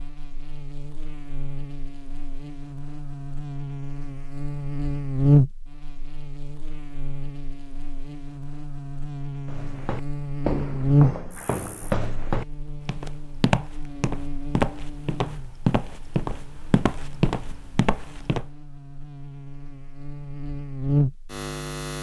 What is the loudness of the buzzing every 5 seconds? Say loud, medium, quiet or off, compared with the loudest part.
medium, loud, loud, quiet, loud.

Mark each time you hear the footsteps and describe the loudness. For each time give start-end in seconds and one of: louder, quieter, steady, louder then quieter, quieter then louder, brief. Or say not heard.
9.4-18.4 steady.